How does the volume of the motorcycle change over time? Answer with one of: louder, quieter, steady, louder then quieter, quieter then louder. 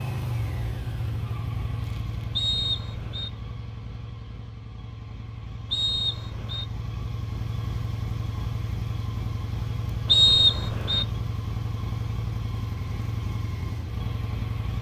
quieter then louder.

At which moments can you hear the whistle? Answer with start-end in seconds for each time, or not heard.
2.4-3.3, 5.7-6.7, 10.1-11.1.